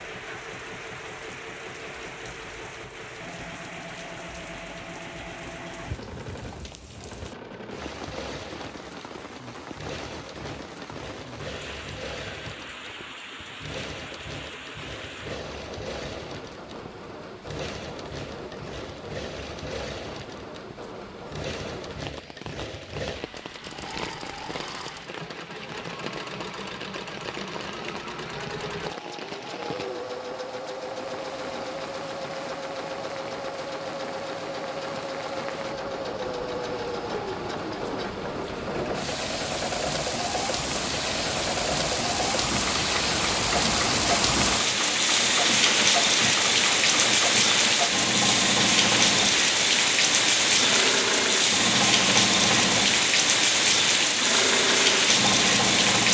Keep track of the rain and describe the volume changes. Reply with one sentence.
The loudness of the rain goes up.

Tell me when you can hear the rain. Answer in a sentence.
The rain can be heard from 0.0 to 56.1 s.